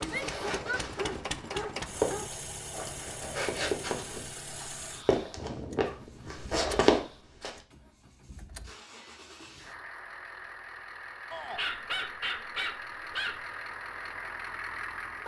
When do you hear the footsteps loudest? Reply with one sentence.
The loudest moment of the footsteps is at 7 seconds.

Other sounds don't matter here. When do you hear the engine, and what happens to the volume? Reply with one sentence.
The engine can be heard from 0.0 to 15.2 s, getting quieter then louder.